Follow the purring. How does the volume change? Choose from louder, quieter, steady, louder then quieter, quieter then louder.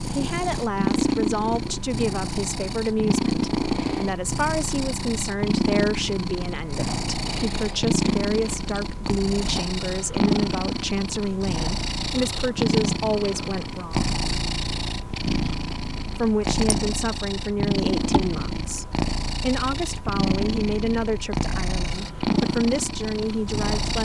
steady.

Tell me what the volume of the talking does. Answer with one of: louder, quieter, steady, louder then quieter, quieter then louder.
steady.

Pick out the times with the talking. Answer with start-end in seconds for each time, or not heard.
0.1-14.1, 16.1-24.0.